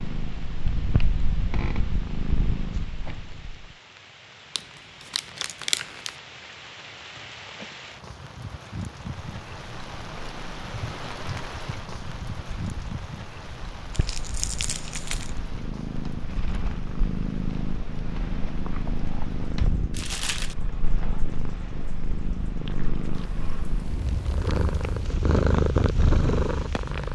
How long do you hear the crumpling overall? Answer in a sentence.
The crumpling can be heard for 4 seconds in total.